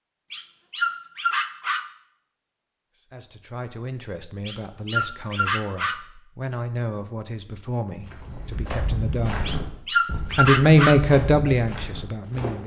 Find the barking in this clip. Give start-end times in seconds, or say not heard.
0.3-1.9, 4.5-6.0, 9.4-11.0.